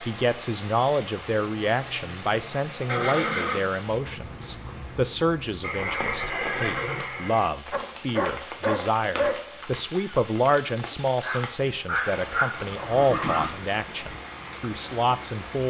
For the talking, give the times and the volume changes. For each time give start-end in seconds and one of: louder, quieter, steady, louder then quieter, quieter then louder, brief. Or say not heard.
0.0-15.6 steady.